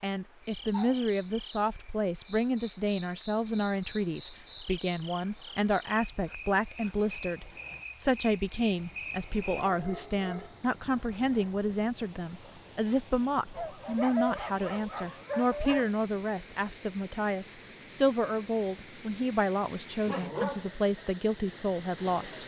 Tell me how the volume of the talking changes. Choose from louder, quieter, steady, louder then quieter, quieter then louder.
steady.